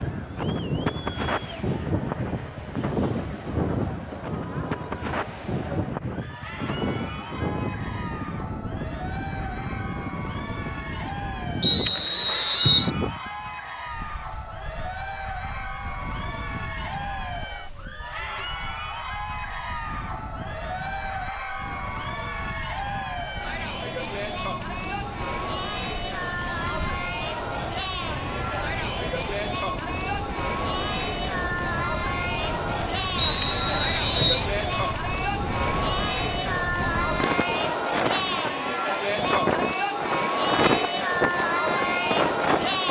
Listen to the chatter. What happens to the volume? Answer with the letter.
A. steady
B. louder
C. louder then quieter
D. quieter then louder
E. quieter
B.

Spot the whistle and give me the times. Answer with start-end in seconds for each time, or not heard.
11.6-12.9, 33.1-34.5.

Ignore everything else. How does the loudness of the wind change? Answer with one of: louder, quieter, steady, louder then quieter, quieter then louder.
quieter then louder.